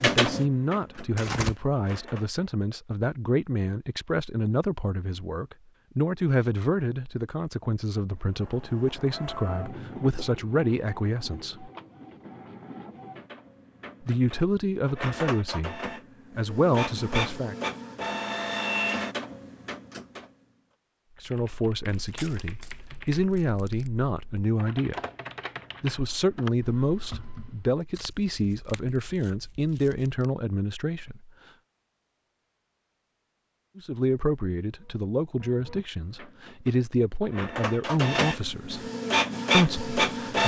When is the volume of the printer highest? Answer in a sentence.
The volume of the printer peaks at 40 seconds.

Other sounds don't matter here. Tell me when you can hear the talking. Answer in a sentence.
You can hear the talking from 0.0 to 11.7 s, from 14.0 to 17.6 s, from 21.2 to 24.9 s, from 25.8 to 31.3 s, from 33.8 to 38.9 s and from 39.5 to 40.4 s.